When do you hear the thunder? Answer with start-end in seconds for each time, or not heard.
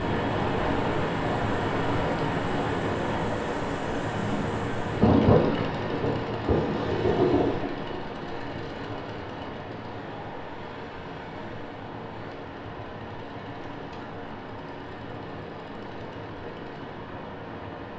5.0-7.7.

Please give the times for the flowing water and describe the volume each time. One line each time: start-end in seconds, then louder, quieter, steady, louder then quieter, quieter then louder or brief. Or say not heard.
0.0-17.9 quieter.